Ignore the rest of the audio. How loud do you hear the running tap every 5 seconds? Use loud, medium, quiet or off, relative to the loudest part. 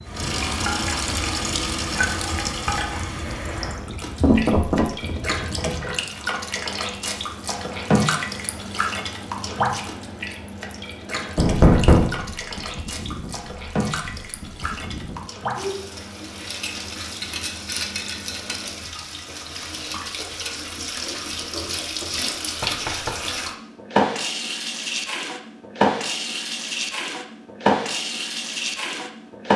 loud, loud, medium, medium, loud, loud.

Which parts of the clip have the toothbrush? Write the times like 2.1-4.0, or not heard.
not heard.